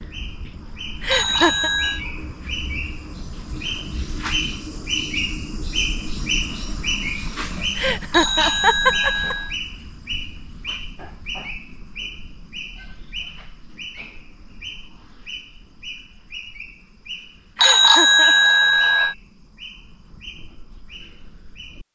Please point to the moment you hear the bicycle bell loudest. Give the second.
18 s.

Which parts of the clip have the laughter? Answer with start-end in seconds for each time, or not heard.
1.0-1.7, 7.8-9.3, 17.6-18.5.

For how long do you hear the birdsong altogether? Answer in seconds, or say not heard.
22 s.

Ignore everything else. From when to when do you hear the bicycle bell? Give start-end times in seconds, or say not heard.
1.1-2.0, 8.1-9.6, 17.6-19.1.